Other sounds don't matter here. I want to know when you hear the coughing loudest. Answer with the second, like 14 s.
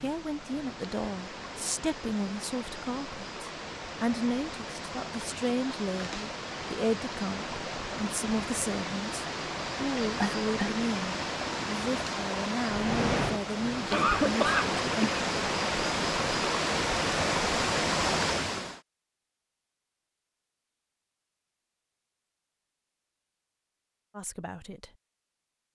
14 s.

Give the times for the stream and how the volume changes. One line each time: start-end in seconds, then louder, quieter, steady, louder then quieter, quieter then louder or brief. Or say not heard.
0.0-18.8 louder.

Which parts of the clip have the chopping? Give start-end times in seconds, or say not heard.
not heard.